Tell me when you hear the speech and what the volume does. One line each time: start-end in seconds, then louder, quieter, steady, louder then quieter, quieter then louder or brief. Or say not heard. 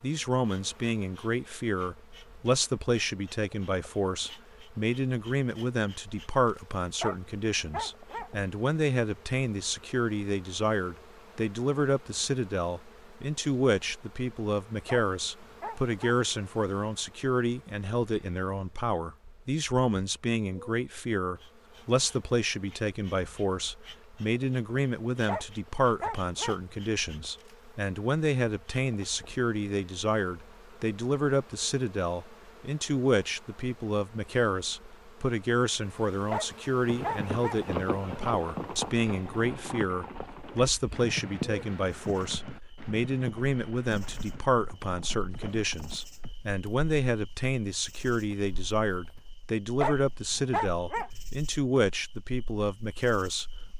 0.0-53.5 steady.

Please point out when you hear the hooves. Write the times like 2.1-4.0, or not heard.
36.9-46.4.